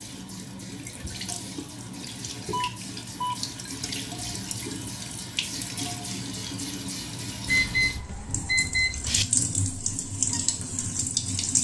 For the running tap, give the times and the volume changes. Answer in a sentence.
The running tap can be heard from 0.0 to 11.5 s, getting louder.